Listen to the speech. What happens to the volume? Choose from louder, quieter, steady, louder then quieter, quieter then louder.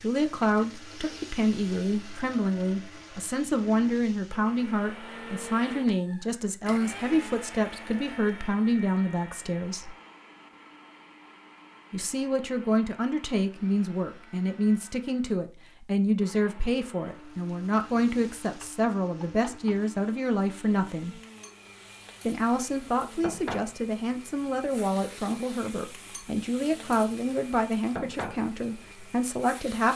steady.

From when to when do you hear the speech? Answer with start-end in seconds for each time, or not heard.
0.0-9.9, 11.9-21.1, 22.2-29.9.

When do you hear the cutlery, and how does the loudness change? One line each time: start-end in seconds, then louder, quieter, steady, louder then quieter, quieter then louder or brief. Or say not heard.
not heard.